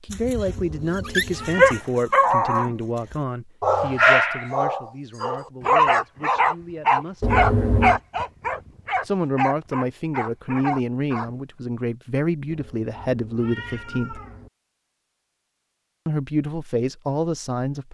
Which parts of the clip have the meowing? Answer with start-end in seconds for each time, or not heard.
0.5-1.9, 7.2-8.0, 12.4-14.5.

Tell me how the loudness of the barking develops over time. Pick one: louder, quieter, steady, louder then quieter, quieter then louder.
quieter.